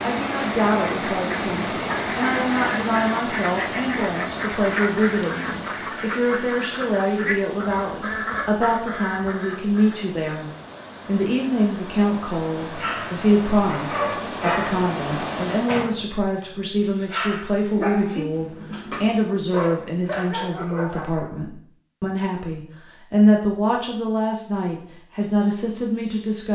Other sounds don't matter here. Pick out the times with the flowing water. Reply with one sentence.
You can hear the flowing water from 0.0 to 15.9 s.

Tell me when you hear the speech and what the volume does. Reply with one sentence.
The speech can be heard from 0.0 to 26.4 s, at a steady volume.